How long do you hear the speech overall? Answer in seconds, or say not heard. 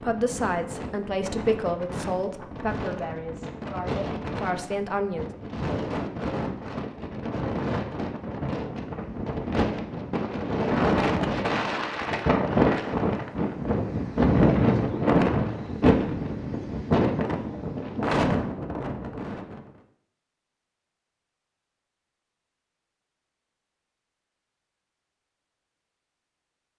5 s.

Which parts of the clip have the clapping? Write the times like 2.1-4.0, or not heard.
not heard.